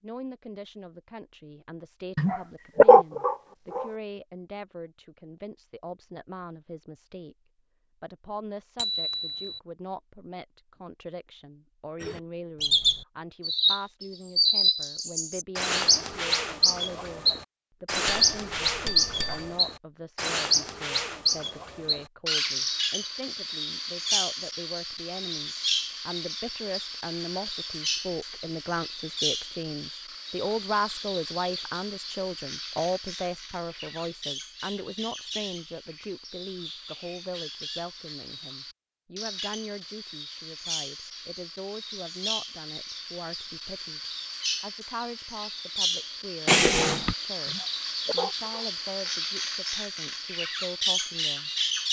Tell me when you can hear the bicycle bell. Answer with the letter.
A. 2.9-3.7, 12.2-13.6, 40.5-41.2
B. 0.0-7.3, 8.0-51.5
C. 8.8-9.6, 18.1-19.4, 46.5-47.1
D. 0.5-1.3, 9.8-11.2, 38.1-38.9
C.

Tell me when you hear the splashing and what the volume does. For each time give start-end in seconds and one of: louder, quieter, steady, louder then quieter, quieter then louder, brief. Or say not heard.
not heard.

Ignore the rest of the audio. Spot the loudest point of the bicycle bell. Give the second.
47 s.